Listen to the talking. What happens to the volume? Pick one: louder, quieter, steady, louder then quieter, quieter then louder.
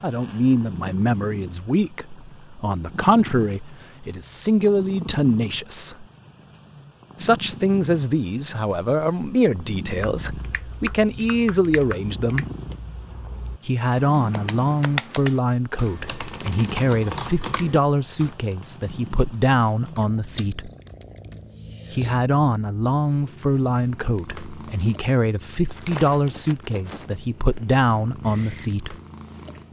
steady.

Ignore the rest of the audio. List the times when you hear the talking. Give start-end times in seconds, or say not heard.
0.0-6.0, 7.2-12.4, 13.7-20.7, 21.9-28.9.